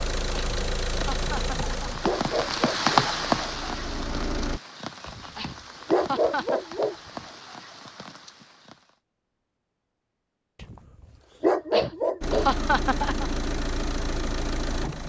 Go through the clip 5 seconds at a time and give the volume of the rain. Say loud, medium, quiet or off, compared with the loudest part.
loud, quiet, off.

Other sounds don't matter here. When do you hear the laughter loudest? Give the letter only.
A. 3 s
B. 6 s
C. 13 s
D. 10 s
C.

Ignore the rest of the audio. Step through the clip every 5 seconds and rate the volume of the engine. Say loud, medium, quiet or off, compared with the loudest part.
loud, off, loud.